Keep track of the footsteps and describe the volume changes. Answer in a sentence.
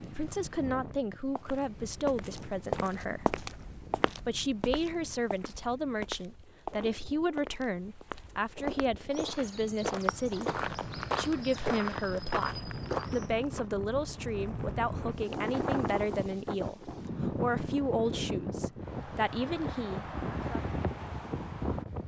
The volume of the footsteps goes down, then up.